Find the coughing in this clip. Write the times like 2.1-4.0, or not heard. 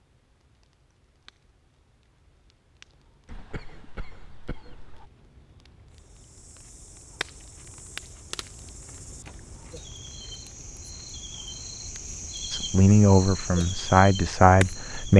3.2-5.1.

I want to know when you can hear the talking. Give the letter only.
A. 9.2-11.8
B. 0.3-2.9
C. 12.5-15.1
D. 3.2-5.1
C.